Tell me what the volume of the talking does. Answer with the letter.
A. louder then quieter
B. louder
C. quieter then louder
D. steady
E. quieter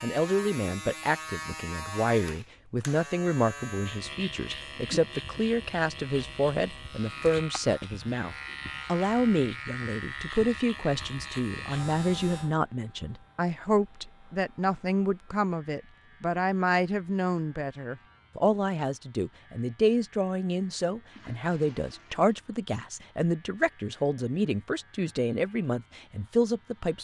D.